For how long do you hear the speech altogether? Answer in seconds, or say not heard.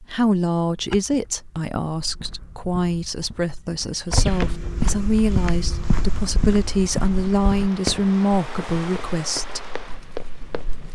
10 s.